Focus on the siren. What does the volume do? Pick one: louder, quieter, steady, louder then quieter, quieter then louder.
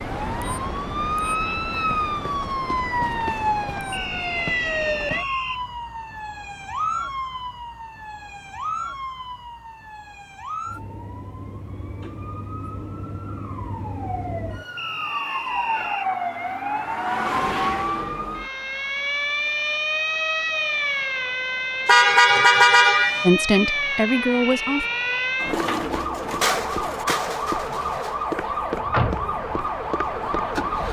quieter then louder.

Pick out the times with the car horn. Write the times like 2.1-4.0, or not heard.
21.9-23.2.